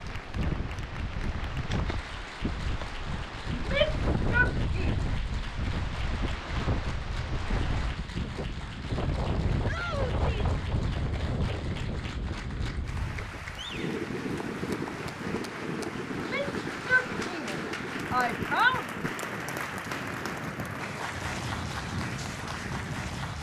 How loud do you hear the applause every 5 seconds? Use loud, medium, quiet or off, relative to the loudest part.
medium, medium, medium, loud, loud.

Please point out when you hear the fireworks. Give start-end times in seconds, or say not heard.
not heard.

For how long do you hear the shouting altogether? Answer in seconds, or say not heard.
5 s.